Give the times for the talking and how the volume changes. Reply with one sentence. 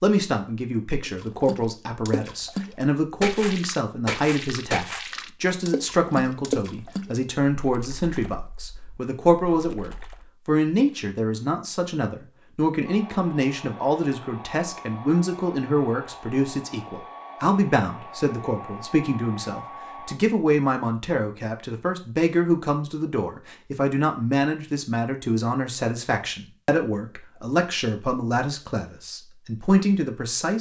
The talking can be heard from 0.0 to 30.5 s, at a steady volume.